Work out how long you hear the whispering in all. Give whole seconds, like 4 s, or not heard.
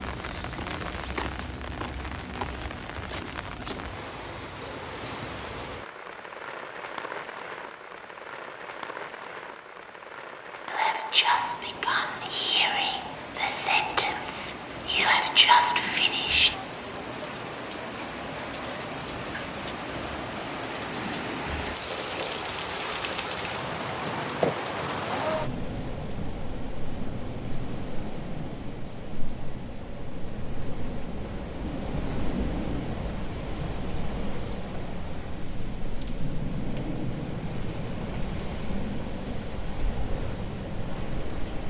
6 s.